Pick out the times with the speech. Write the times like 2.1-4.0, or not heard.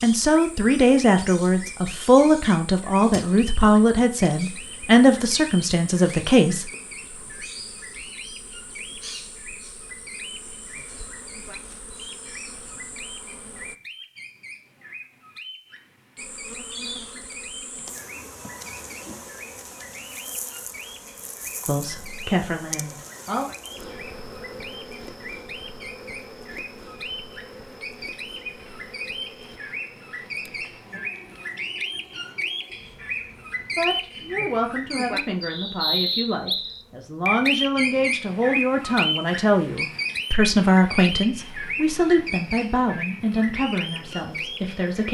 0.0-6.7, 21.6-23.4, 33.8-45.0.